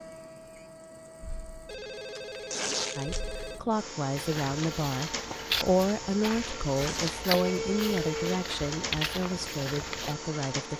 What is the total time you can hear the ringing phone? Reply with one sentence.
The ringing phone can be heard for 3 seconds in total.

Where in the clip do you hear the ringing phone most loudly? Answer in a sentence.
The volume of the ringing phone peaks at 8 seconds.